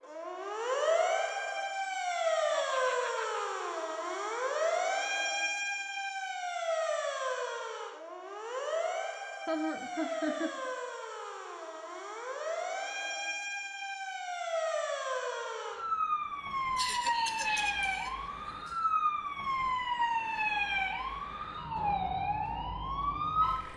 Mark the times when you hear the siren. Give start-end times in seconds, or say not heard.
0.0-23.7.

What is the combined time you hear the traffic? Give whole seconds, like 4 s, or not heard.
not heard.